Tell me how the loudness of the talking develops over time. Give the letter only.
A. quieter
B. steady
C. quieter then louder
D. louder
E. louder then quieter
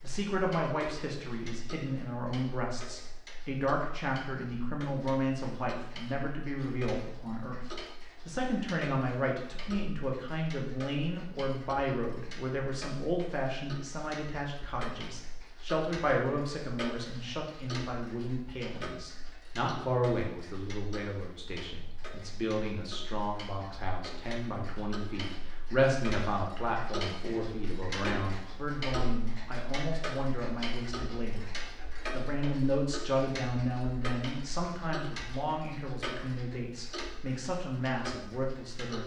B.